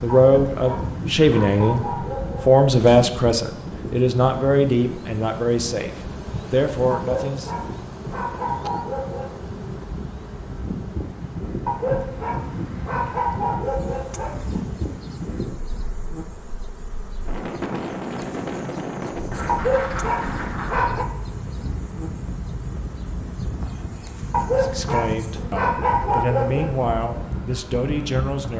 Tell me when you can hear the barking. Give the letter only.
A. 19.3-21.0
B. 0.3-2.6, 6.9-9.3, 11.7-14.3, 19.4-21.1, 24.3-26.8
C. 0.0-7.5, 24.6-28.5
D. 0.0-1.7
B.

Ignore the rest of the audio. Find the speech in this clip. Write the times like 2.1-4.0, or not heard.
0.0-7.5, 24.6-28.5.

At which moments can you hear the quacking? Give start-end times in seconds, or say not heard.
19.3-21.0.